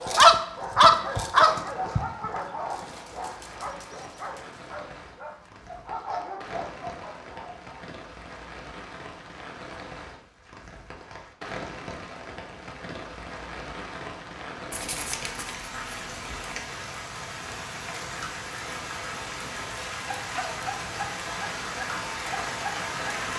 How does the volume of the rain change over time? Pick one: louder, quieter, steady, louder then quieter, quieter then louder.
louder.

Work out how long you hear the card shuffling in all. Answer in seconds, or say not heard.
2 s.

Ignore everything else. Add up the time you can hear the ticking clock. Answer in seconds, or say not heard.
not heard.